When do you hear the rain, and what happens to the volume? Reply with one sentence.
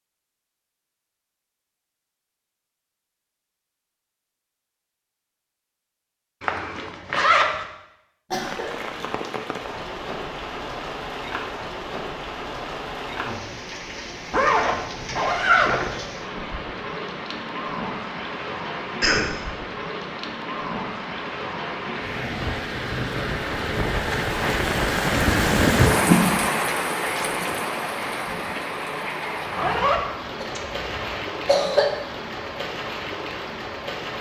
The rain can be heard from 8.4 to 34.1 s, getting louder then quieter.